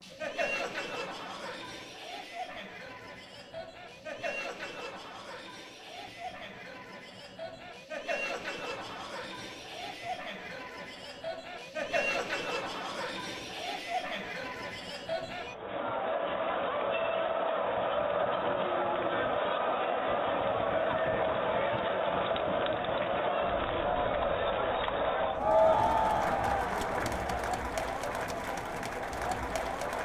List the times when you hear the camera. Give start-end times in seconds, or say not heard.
not heard.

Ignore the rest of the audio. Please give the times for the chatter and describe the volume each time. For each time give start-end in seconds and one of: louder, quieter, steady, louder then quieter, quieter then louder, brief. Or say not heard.
0.0-30.0 louder.